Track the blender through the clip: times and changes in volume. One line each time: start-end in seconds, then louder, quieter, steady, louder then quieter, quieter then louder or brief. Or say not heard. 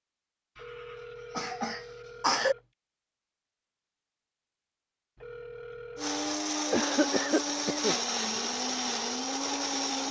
6.0-10.0 steady.